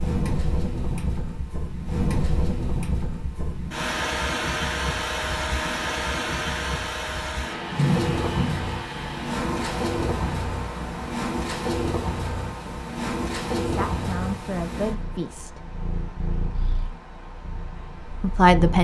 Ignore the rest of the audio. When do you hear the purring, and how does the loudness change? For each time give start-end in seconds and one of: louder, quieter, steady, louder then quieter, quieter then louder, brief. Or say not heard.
0.0-18.7 louder then quieter.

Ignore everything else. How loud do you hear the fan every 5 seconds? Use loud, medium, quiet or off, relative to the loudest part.
loud, loud, medium, quiet.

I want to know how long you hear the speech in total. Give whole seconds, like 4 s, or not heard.
3 s.